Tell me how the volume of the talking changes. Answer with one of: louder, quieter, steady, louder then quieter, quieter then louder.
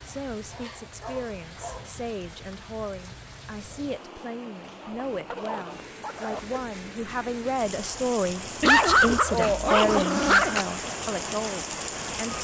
louder.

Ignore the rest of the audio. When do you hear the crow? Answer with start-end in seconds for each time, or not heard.
not heard.